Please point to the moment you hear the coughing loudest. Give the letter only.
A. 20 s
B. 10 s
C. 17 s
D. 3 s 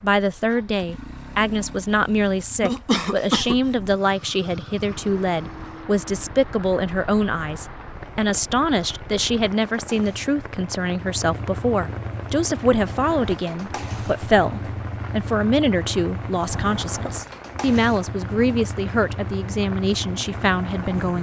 D.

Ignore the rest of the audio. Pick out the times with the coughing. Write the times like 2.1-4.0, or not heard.
2.6-3.5, 16.5-17.2.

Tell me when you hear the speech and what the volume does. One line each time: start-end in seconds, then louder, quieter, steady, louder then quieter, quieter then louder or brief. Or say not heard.
0.0-21.1 steady.